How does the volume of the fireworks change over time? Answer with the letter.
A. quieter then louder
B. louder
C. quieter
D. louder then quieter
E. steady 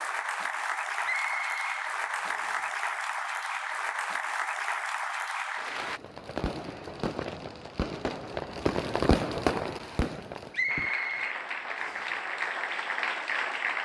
D.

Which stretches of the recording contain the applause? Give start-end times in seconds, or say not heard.
0.0-6.0, 10.7-13.8.